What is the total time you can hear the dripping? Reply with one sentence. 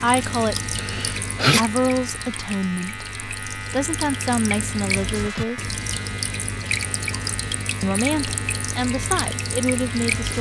You can hear the dripping for 10 seconds altogether.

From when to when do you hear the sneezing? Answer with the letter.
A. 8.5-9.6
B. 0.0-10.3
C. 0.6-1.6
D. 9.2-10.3
C.